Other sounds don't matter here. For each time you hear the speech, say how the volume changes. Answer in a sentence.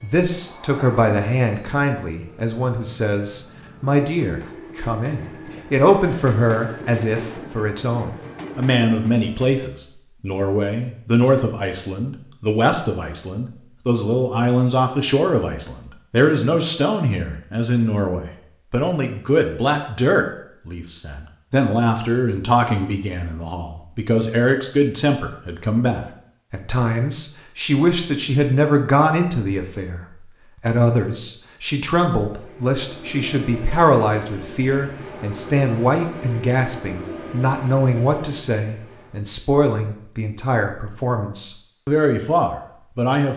You can hear the speech from 0.0 to 43.3 s, at a steady volume.